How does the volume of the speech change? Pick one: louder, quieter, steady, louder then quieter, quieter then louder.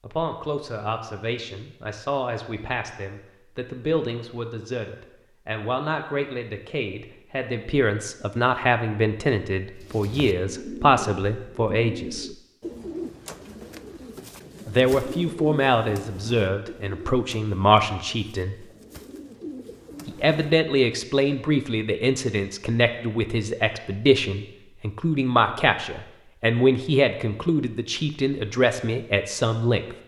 louder.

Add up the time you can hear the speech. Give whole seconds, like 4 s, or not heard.
26 s.